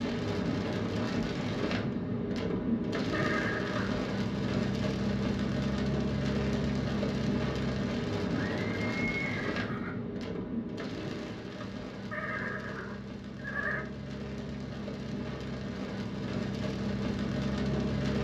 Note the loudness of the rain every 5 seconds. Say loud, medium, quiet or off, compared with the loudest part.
loud, loud, medium, loud.